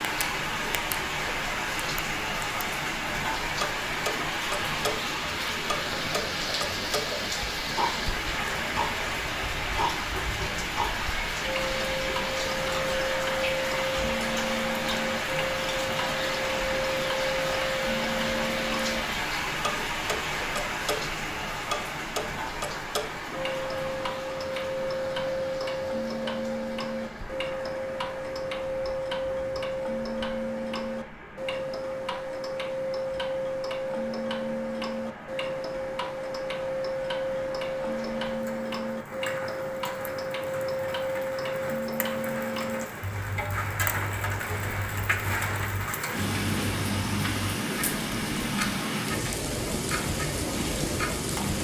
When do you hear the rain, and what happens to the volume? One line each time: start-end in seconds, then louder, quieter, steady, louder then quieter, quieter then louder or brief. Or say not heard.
0.0-51.5 quieter then louder.